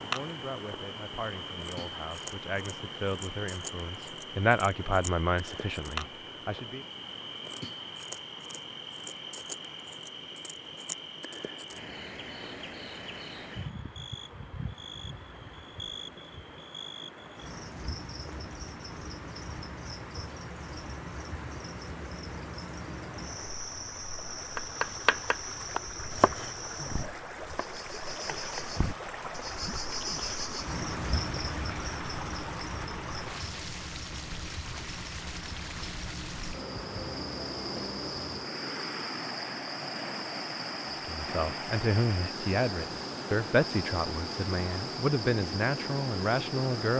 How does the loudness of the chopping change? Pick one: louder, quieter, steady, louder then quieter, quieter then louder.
quieter.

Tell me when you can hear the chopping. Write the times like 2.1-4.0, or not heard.
24.6-29.9.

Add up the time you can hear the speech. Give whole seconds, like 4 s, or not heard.
13 s.